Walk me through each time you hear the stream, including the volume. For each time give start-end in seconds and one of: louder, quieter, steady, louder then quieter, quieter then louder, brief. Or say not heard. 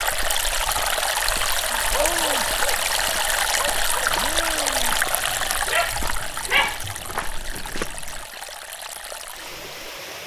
0.0-10.2 quieter.